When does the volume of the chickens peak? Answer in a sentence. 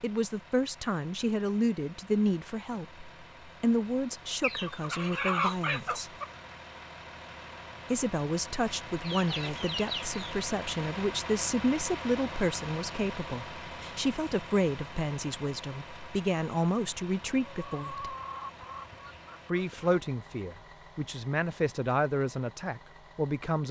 The volume of the chickens peaks at 5 seconds.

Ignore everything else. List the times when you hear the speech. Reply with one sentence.
You can hear the speech from 0.0 to 6.1 s, from 7.9 to 18.1 s and from 19.4 to 23.6 s.